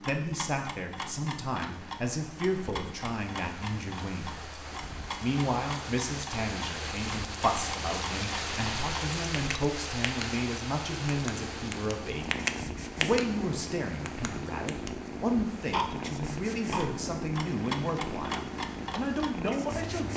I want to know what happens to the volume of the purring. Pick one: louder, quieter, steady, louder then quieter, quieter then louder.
steady.